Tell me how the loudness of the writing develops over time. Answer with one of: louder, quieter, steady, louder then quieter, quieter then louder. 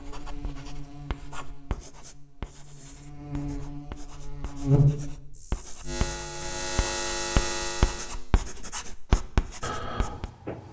louder.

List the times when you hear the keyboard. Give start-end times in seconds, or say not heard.
9.1-10.6.